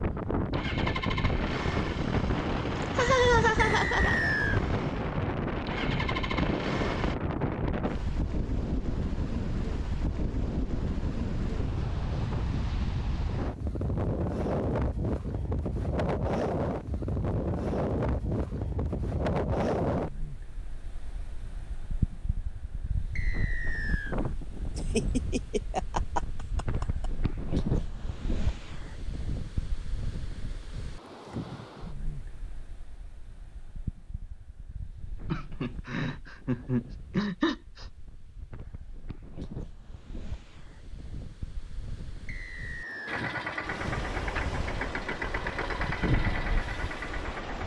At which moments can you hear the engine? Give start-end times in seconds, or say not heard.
0.3-7.2, 43.0-47.6.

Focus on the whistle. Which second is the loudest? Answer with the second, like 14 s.
4 s.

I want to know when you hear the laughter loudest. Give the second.
3 s.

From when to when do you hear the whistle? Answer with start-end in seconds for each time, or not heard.
3.5-4.6, 23.1-24.1, 42.2-43.2.